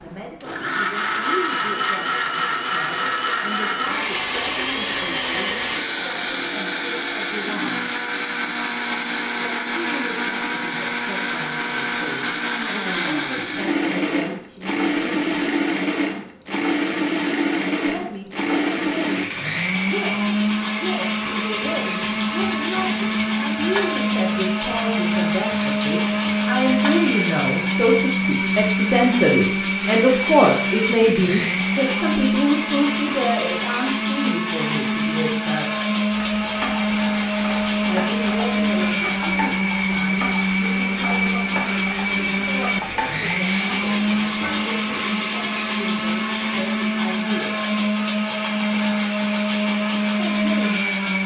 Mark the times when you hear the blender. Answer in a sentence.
The blender can be heard from 0.0 to 51.2 s.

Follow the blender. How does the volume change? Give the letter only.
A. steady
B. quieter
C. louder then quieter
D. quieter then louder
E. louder
A.